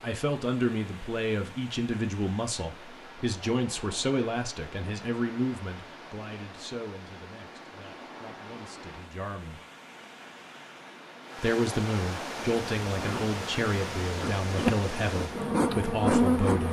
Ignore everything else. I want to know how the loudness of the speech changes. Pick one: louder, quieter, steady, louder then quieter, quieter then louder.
quieter then louder.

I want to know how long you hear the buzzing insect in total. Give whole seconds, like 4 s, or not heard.
4 s.